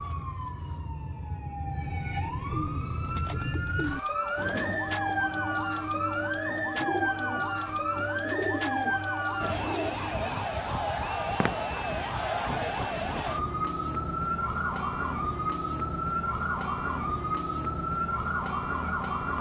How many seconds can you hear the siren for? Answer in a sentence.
The siren can be heard for 19 seconds in total.